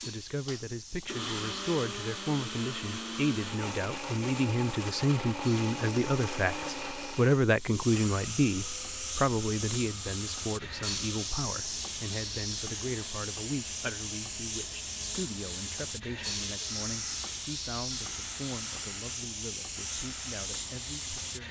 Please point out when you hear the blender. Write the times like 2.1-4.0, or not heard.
0.0-21.4.